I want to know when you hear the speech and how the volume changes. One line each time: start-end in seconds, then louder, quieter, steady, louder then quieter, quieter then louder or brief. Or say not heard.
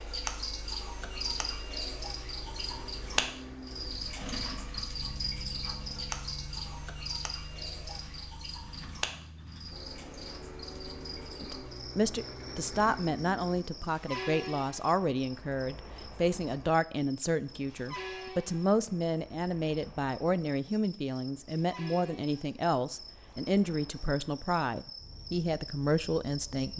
11.4-26.7 steady.